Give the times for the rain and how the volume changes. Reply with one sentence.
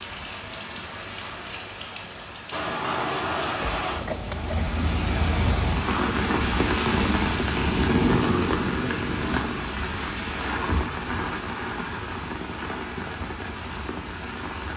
You can hear the rain from 0.0 to 14.7 s, getting louder then quieter.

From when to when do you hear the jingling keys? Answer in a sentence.
The jingling keys can be heard from 3.6 to 4.8 s.